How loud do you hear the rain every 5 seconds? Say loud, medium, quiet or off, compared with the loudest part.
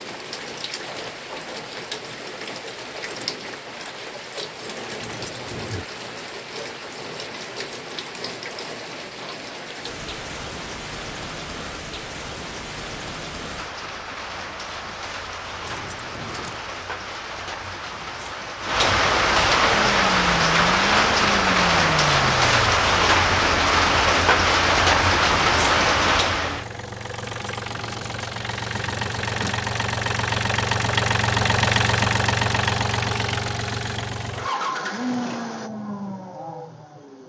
quiet, quiet, quiet, medium, loud, loud, off, off.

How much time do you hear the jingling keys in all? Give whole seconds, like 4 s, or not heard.
4 s.